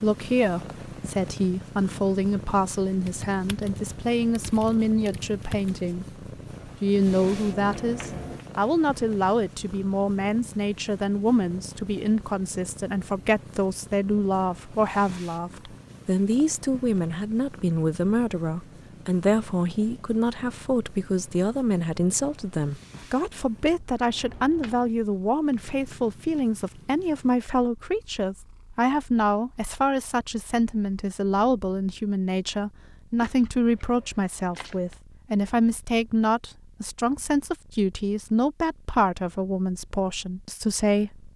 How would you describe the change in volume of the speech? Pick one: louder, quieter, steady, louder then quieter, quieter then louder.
steady.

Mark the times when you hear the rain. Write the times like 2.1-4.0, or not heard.
not heard.